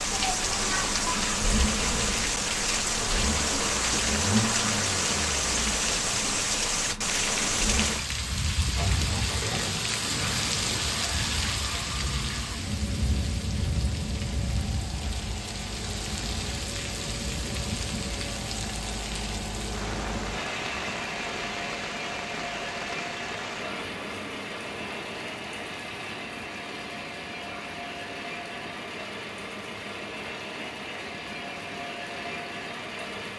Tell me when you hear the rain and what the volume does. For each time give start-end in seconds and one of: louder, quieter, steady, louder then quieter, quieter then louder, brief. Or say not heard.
0.0-33.3 quieter.